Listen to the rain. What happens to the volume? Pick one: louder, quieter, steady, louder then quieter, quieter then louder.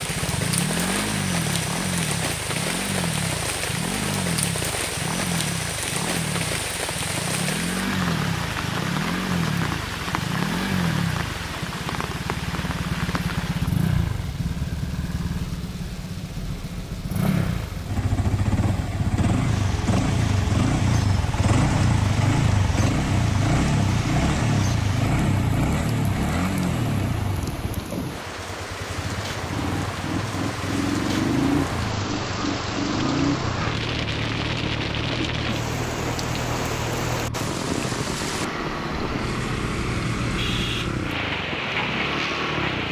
quieter then louder.